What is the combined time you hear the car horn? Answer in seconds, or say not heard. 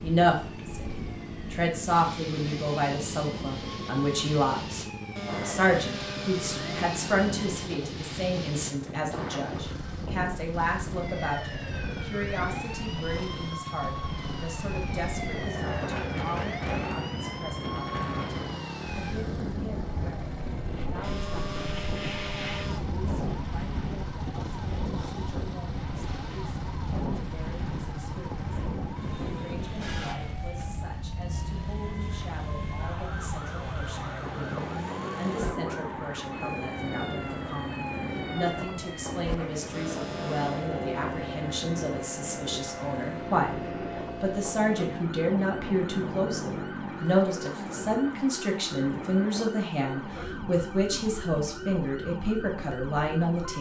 5 s.